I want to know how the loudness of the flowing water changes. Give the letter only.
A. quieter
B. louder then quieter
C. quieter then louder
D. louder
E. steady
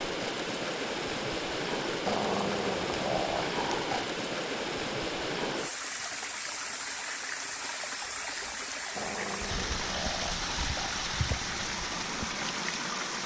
E.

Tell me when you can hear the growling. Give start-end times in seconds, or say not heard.
2.0-4.0, 8.9-10.9.